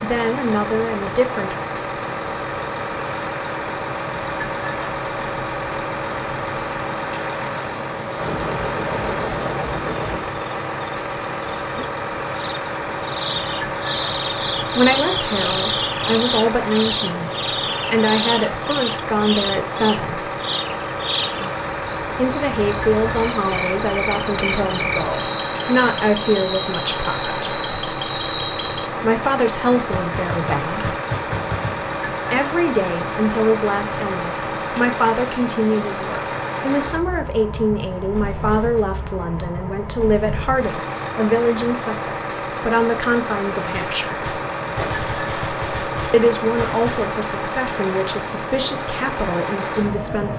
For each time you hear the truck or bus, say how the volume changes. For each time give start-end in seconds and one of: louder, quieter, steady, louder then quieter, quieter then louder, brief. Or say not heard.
0.0-50.3 steady.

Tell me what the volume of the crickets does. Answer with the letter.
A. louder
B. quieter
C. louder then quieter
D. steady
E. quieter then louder
D.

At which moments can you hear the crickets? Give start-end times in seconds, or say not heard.
0.0-36.5.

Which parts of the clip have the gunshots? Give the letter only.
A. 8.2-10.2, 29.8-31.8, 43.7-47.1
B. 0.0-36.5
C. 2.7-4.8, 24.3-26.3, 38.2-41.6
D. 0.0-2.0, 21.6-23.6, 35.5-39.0
A.